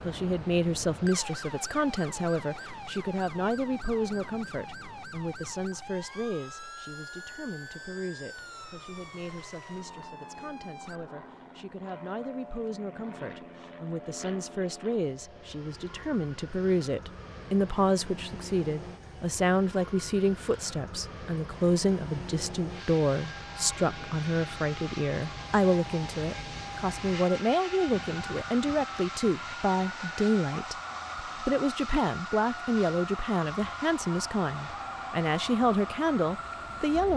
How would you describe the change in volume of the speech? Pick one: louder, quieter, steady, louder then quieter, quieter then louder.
quieter then louder.